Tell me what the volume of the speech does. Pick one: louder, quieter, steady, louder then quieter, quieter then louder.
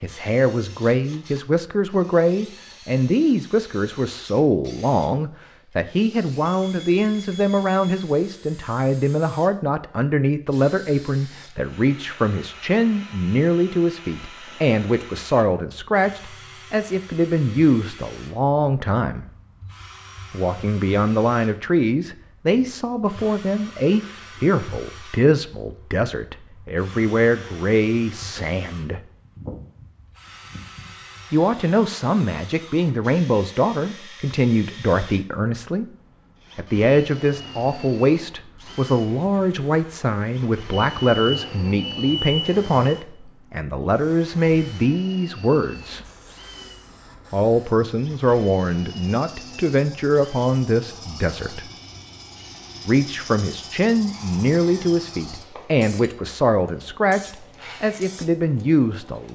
steady.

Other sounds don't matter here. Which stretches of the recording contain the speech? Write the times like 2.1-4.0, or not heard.
0.0-19.2, 20.3-29.0, 31.3-35.9, 36.5-46.0, 47.3-51.7, 52.9-59.2.